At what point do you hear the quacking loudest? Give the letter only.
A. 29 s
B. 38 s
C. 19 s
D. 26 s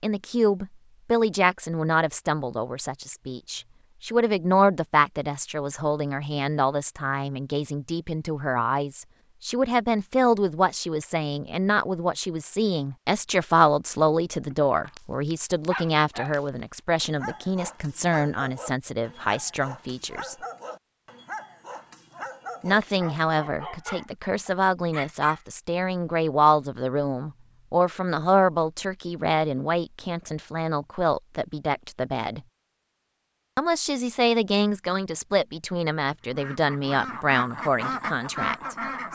B.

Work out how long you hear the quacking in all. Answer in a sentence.
The quacking can be heard for 3 seconds in total.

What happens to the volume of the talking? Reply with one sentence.
The volume of the talking stays about the same.